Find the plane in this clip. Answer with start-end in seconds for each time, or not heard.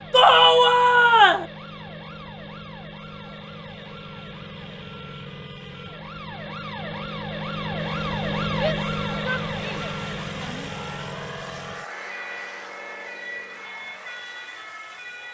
8.0-15.2.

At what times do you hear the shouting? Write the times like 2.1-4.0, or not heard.
0.1-1.4, 8.5-10.7.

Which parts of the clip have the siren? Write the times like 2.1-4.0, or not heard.
0.0-15.2.